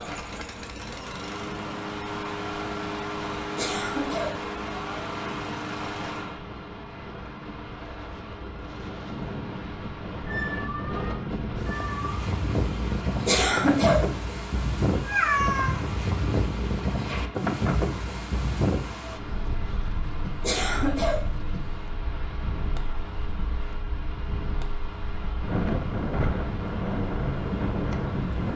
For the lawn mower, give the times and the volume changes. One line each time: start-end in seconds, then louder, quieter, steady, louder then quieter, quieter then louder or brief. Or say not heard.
0.0-28.5 quieter.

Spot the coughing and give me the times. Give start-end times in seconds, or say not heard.
3.5-4.5, 13.2-14.1, 20.4-21.3.